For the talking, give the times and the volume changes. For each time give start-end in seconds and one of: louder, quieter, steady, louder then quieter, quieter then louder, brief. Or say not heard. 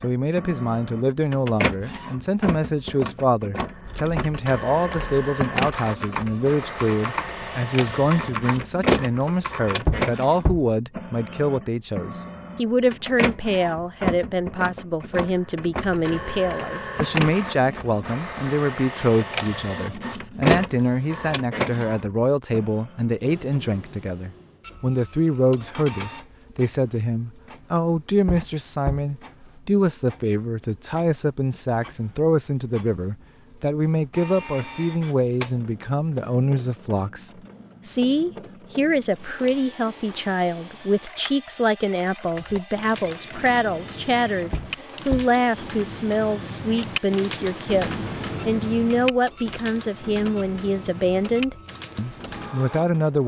0.0-53.2 steady.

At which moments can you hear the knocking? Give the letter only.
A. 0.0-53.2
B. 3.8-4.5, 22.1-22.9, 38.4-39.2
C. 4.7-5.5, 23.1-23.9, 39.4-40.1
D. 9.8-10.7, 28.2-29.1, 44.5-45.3
D.